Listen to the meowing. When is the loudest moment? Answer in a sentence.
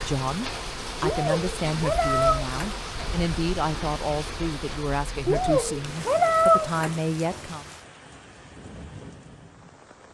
The volume of the meowing peaks at 6 seconds.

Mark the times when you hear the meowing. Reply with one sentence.
You can hear the meowing from 1.0 to 2.8 s and from 5.2 to 7.0 s.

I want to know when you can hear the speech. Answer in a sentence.
The speech can be heard from 0.0 to 7.7 s.